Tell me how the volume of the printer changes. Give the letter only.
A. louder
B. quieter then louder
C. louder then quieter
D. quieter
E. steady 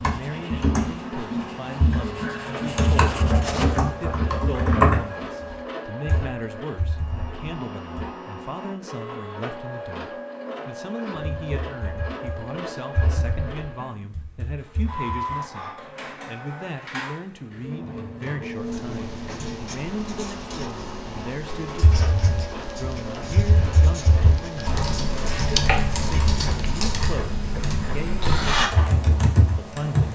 E.